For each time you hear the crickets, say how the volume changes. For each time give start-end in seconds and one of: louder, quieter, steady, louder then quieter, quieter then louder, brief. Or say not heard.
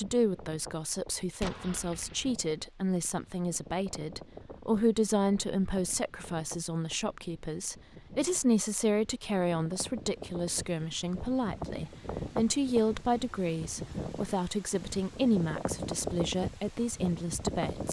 not heard.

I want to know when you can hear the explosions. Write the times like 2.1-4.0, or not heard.
1.4-2.3.